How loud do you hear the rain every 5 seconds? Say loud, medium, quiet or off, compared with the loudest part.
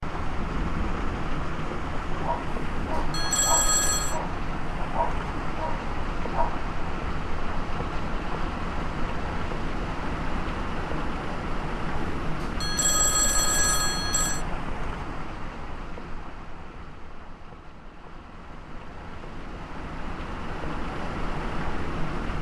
loud, loud, loud, medium, loud.